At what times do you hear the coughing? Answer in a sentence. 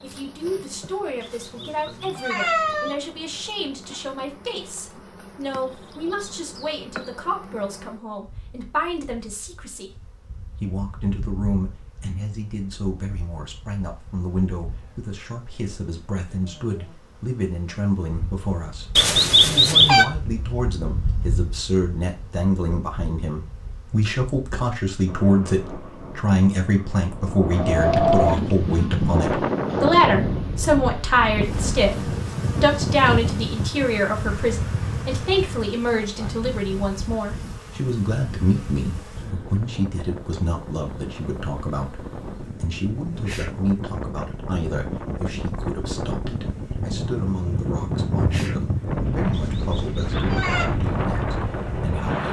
You can't hear the coughing here.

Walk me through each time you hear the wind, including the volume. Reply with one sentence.
The wind can be heard from 25.1 to 52.2 s, getting quieter then louder.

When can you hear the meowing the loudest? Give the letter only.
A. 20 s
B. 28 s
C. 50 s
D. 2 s
A.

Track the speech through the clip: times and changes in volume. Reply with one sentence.
You can hear the speech from 0.0 to 52.2 s, getting louder then quieter.